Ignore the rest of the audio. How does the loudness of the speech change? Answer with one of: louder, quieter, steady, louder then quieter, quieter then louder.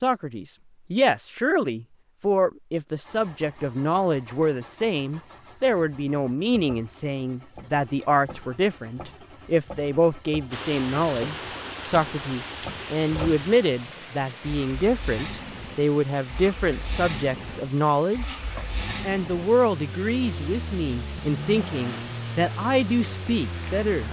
steady.